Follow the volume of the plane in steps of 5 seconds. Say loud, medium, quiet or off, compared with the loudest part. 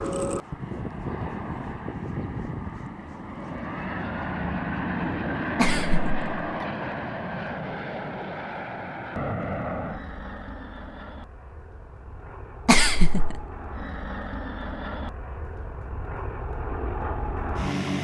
loud, loud, medium, loud.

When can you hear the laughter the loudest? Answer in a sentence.
The loudest moment of the laughter is at 13 seconds.